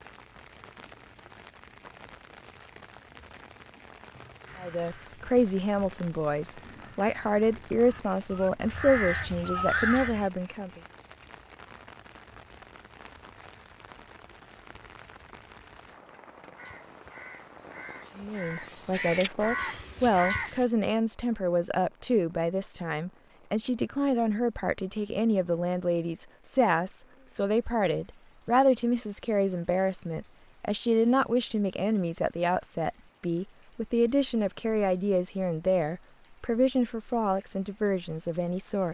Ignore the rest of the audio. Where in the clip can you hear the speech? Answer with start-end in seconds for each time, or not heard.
4.6-10.8, 18.1-38.8.